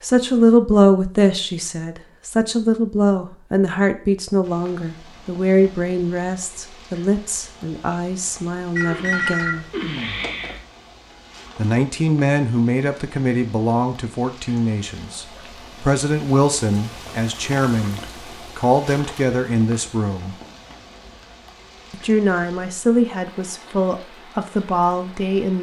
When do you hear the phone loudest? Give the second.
9 s.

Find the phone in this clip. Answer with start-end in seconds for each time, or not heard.
8.8-10.6.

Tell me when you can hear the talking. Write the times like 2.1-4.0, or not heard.
0.0-9.7, 11.6-20.4, 21.9-25.5.